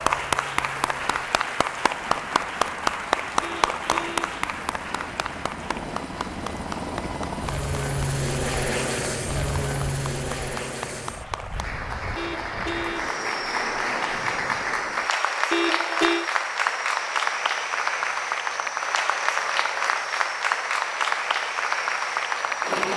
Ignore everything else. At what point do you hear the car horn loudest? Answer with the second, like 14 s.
16 s.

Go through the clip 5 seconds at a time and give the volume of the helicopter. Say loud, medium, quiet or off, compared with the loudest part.
quiet, loud, medium, quiet, quiet.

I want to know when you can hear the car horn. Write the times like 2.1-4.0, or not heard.
3.4-4.3, 12.2-13.2, 15.5-16.3.